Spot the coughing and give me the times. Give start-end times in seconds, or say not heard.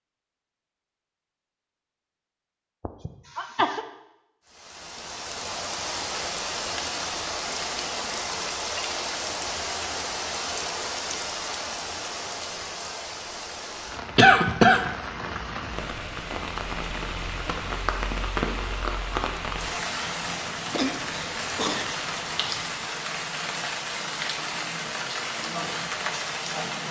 2.8-3.9, 14.2-14.9, 20.7-21.9.